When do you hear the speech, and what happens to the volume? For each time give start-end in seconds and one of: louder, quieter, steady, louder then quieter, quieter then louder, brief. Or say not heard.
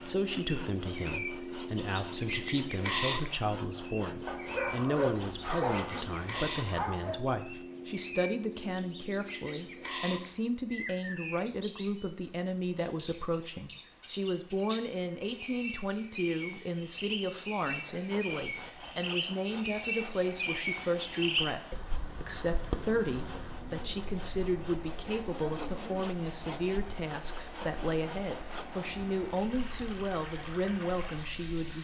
0.1-31.7 steady.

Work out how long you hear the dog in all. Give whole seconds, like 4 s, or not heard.
3 s.